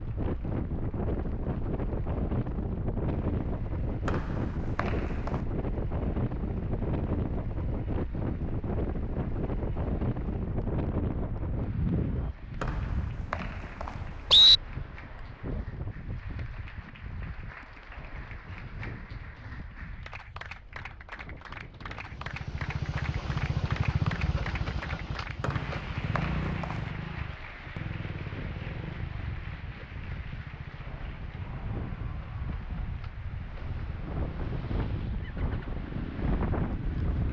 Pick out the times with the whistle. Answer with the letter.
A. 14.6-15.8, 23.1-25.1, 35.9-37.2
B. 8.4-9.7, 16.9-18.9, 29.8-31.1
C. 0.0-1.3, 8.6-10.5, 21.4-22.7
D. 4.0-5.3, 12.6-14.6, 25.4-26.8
D.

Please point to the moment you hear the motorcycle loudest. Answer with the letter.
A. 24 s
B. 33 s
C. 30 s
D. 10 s
A.